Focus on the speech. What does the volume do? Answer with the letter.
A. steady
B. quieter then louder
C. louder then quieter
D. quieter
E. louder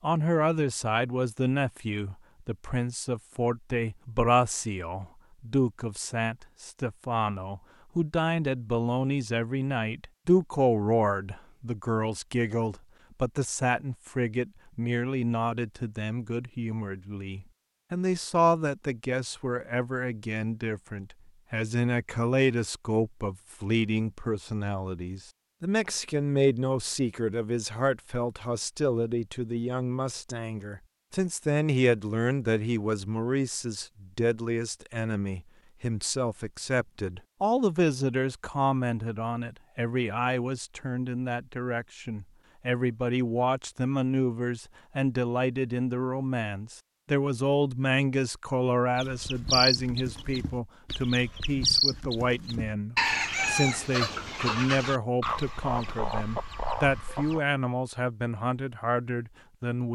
A.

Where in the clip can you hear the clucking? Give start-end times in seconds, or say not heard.
49.0-57.4.